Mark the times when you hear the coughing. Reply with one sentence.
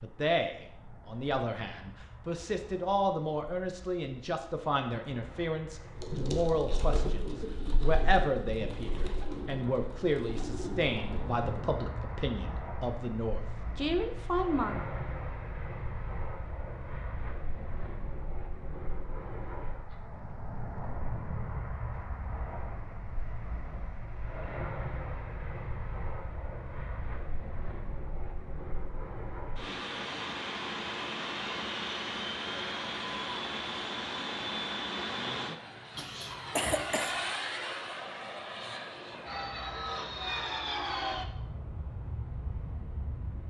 The coughing can be heard from 36.0 to 37.1 s.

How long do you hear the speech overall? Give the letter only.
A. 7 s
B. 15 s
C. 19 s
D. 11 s
B.